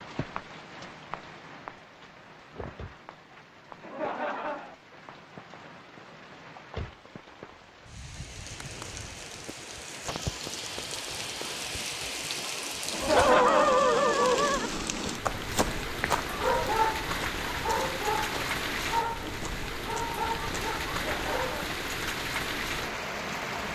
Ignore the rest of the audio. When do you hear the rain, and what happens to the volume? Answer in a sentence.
The rain can be heard from 0.0 to 23.7 s, getting louder.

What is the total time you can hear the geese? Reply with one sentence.
You can't hear the geese here.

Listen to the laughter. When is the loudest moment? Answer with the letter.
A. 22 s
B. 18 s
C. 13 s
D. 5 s
C.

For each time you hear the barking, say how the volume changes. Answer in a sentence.
You can hear the barking from 13.2 to 21.6 s, getting quieter.